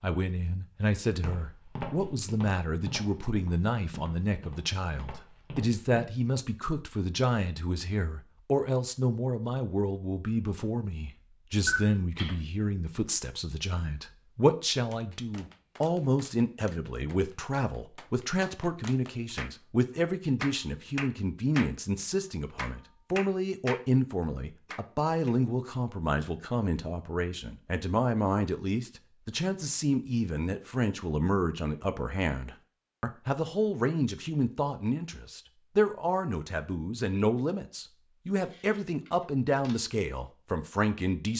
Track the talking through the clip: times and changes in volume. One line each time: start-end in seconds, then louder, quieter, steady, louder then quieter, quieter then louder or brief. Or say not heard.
0.0-41.3 steady.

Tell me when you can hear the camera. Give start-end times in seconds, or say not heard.
11.7-12.3, 38.4-39.8.